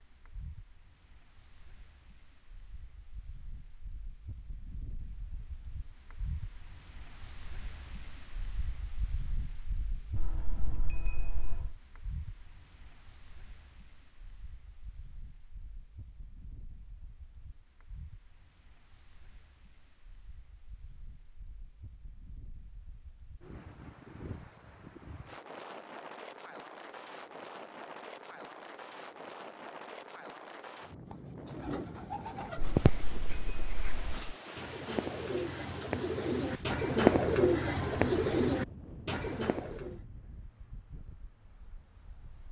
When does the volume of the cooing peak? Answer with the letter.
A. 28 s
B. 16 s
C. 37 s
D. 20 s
C.